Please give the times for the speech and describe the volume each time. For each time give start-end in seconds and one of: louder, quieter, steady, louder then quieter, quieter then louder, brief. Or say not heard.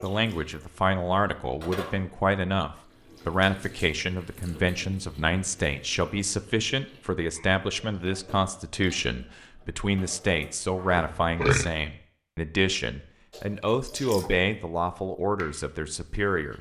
0.0-16.5 steady.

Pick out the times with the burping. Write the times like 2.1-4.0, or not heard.
10.9-11.7.